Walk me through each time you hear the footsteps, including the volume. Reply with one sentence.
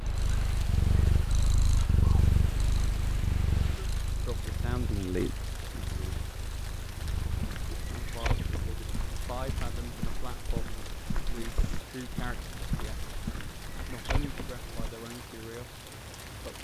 You can hear the footsteps from 7.2 to 14.9 s, at a steady volume.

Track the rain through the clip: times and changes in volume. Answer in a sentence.
You can hear the rain from 0.0 to 16.5 s, at a steady volume.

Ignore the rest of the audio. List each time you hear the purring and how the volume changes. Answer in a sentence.
The purring can be heard from 0.0 to 9.7 s, getting quieter.